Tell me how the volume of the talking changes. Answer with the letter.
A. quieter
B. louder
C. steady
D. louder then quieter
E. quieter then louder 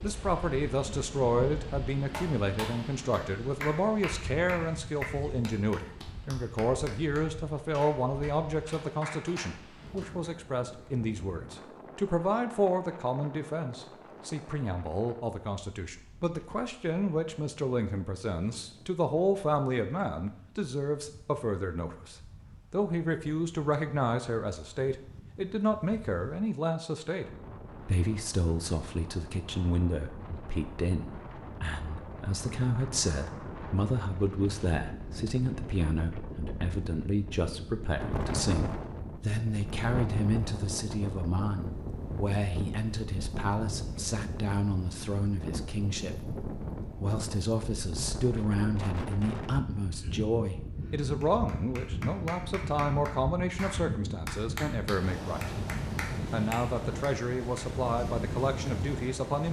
C.